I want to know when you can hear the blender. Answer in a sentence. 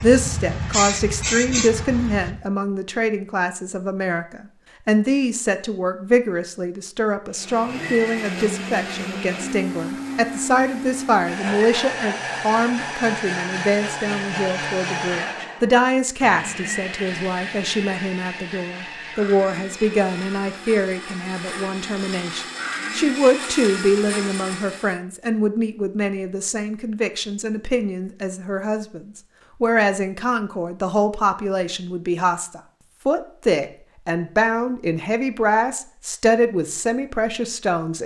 The blender can be heard from 7.3 to 25.0 s.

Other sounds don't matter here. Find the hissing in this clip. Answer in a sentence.
The hissing can be heard from 0.0 to 2.4 s.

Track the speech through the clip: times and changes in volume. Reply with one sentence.
The speech can be heard from 0.0 to 38.0 s, at a steady volume.